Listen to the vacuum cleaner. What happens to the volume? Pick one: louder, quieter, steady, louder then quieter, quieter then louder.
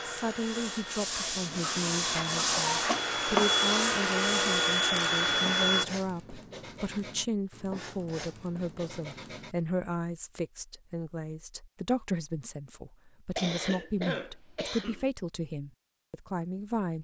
louder.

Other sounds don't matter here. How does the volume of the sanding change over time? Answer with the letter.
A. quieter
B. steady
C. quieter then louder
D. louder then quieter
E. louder
A.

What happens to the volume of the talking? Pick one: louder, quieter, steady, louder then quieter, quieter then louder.
steady.